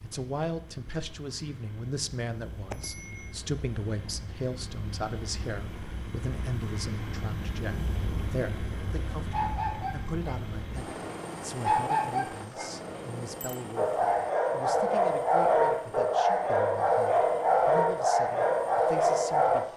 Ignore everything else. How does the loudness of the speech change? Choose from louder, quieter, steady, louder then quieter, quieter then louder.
quieter.